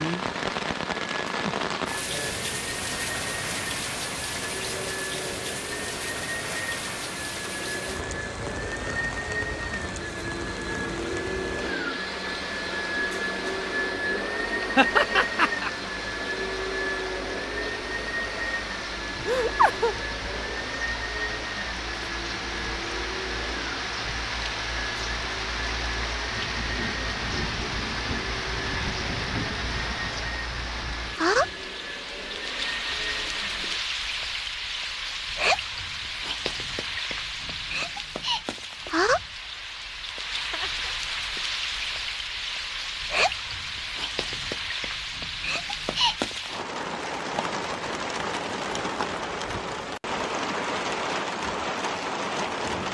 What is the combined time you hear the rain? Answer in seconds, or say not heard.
53 s.